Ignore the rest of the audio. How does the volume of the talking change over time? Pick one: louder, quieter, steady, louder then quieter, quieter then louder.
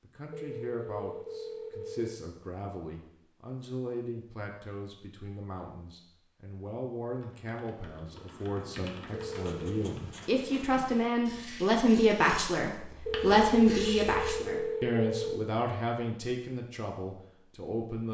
louder then quieter.